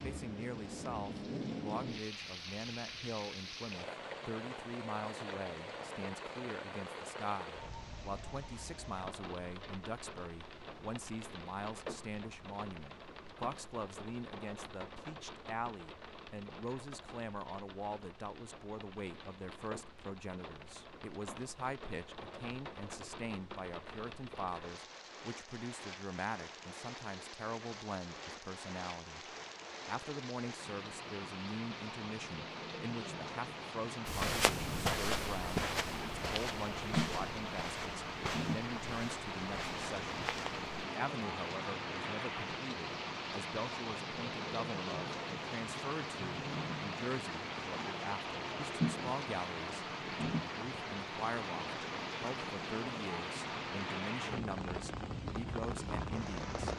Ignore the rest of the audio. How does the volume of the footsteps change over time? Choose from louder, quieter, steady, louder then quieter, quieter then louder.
quieter.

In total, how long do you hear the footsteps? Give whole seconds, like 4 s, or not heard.
7 s.